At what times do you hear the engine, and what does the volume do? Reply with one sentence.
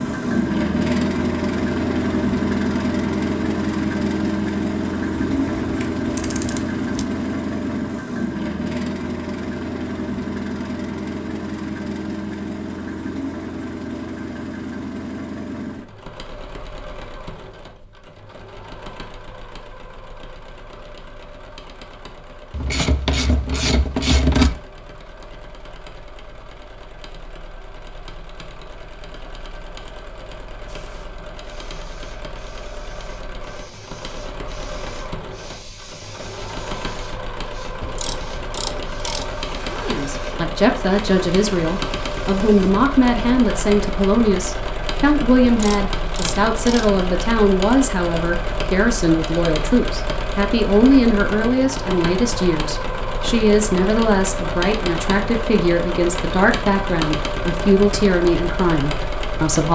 You can hear the engine from 0.0 to 59.6 s, getting quieter then louder.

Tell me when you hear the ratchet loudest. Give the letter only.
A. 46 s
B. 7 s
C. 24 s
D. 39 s
C.